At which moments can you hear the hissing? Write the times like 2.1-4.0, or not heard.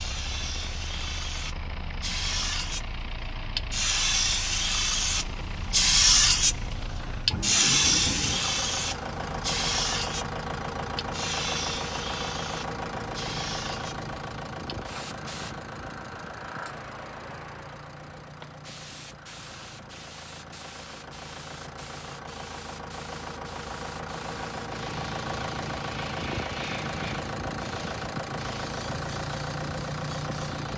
0.0-30.7.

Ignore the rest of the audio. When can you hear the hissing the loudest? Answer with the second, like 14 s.
6 s.